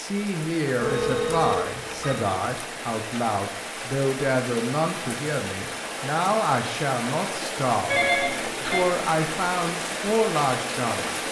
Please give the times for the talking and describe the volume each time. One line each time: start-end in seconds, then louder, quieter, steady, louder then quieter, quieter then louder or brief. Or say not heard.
0.0-8.1 steady
8.7-11.1 brief.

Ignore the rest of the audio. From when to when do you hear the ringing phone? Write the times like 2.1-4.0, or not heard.
0.8-2.1, 7.9-8.8.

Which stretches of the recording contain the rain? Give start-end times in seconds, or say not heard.
0.0-11.2.